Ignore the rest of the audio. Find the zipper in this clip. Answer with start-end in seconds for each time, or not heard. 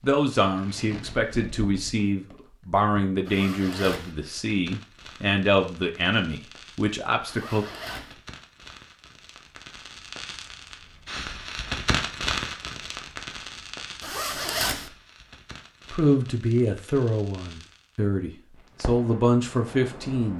3.2-4.2, 7.2-8.2, 14.0-14.9.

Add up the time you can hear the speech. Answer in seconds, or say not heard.
12 s.